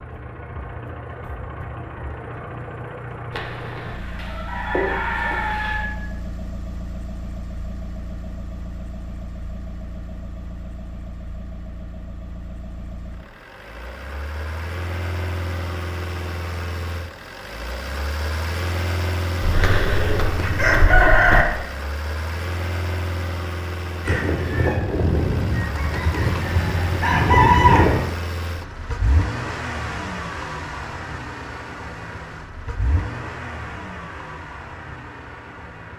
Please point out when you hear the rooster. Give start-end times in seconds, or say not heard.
3.3-5.9, 19.4-21.4, 24.0-28.0.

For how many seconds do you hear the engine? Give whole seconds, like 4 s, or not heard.
36 s.